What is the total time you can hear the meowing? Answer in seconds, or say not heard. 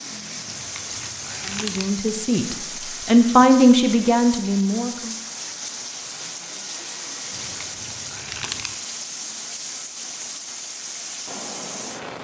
3 s.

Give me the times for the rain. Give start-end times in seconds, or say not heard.
0.0-12.2.